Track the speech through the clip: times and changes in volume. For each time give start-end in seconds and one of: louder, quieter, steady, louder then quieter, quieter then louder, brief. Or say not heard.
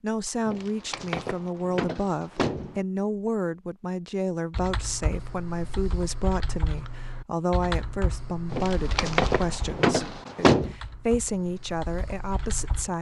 0.0-12.9 steady.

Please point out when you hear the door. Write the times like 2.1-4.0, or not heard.
0.5-2.8, 8.5-10.8.